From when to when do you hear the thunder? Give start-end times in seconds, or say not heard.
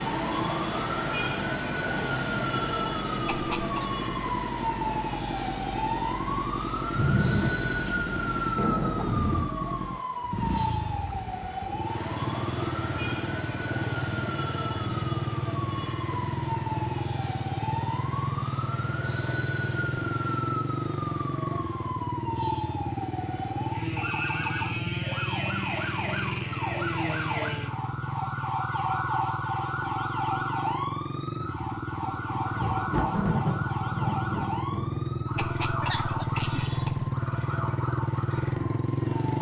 6.9-9.5, 32.0-35.2.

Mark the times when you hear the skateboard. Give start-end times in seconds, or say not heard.
not heard.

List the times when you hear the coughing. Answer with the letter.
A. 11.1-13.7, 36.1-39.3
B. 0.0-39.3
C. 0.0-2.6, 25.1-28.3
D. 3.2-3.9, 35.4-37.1
D.